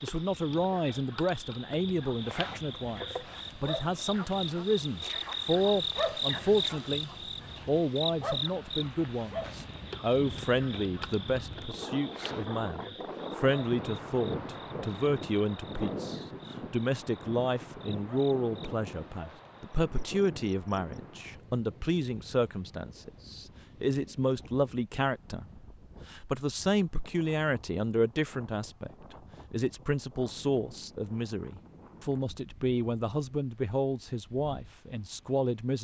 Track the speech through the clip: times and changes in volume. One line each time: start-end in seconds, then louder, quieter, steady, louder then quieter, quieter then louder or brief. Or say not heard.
0.0-35.7 steady.